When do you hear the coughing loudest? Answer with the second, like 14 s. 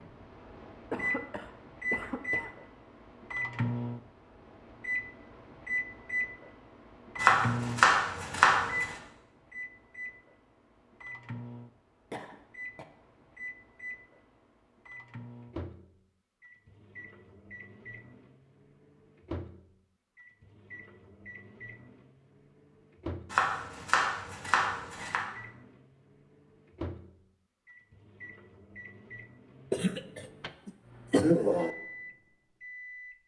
31 s.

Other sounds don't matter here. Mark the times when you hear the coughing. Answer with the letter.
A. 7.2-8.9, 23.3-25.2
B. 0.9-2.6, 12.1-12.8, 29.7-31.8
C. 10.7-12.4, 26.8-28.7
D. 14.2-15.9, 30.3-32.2
B.